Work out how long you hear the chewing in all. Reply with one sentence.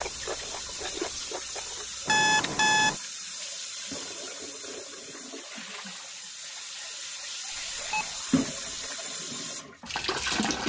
The chewing can be heard for 2 seconds in total.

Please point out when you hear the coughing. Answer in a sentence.
The coughing can't be heard in this clip.